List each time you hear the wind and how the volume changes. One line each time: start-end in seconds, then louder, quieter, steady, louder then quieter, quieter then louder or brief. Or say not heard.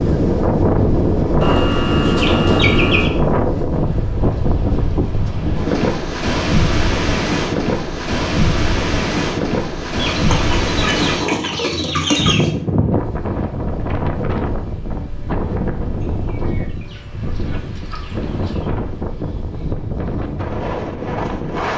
0.0-21.7 quieter.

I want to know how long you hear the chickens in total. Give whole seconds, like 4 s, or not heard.
7 s.